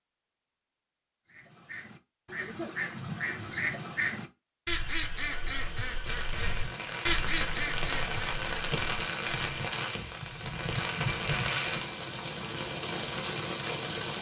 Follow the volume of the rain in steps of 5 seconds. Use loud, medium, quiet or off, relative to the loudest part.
off, loud, loud.